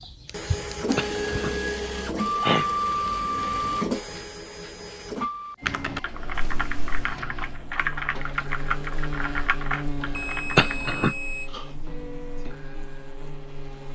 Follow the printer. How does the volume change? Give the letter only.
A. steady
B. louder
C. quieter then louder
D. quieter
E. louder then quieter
D.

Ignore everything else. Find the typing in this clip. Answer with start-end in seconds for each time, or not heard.
5.6-10.9.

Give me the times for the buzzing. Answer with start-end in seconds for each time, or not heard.
6.0-13.9.